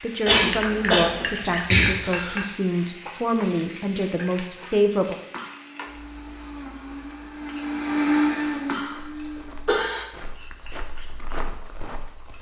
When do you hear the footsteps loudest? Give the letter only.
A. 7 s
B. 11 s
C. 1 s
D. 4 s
B.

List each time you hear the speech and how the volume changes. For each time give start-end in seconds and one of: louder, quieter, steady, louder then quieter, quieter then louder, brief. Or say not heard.
0.0-5.2 steady.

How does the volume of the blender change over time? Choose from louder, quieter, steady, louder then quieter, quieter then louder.
louder then quieter.